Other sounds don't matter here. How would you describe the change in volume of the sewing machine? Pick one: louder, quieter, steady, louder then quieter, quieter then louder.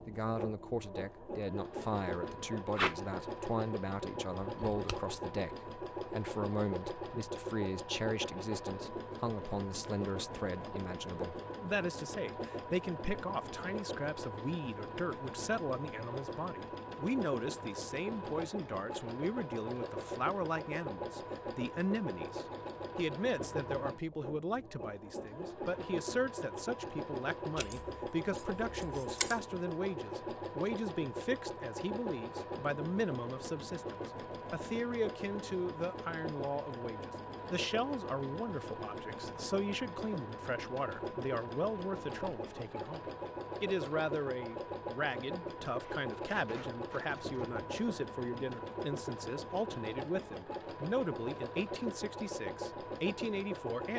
steady.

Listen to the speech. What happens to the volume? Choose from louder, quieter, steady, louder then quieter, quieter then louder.
steady.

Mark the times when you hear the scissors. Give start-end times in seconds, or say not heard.
4.4-5.0, 27.6-29.4.